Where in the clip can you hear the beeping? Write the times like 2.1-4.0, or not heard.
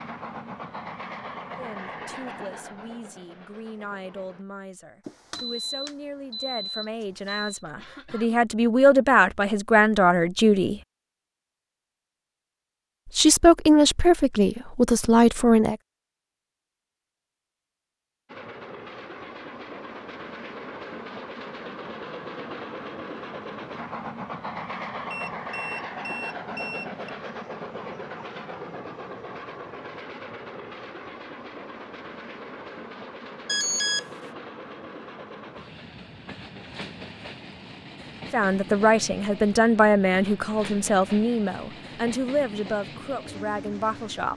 5.0-7.6, 25.1-27.1, 33.5-34.0.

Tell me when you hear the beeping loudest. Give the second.
34 s.